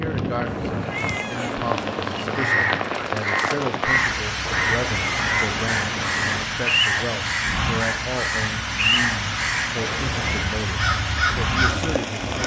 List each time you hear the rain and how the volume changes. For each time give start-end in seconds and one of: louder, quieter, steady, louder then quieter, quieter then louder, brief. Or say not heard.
0.0-12.4 steady.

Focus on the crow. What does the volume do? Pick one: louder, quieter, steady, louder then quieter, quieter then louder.
steady.